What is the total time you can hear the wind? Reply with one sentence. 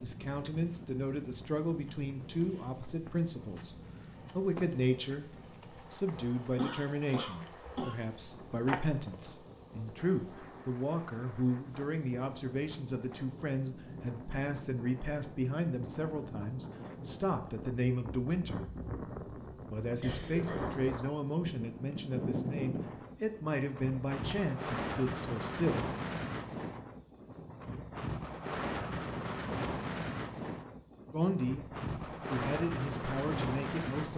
You can hear the wind for 34 seconds altogether.